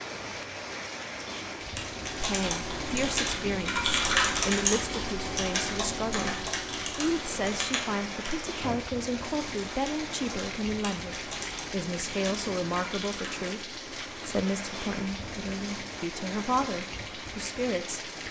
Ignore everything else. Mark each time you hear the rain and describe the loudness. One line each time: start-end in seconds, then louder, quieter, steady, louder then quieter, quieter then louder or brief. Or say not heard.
0.0-18.2 steady.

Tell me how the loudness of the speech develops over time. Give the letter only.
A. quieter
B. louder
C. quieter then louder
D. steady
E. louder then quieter
D.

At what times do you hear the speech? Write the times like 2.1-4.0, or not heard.
2.2-18.1.